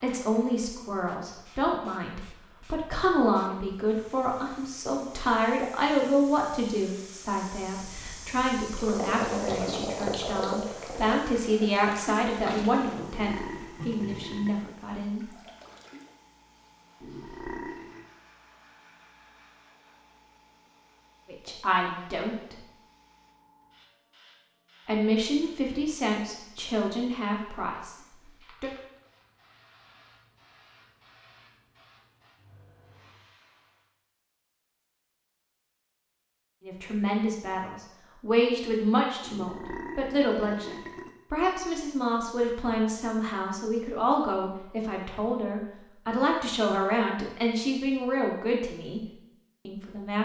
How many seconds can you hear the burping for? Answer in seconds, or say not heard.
5 s.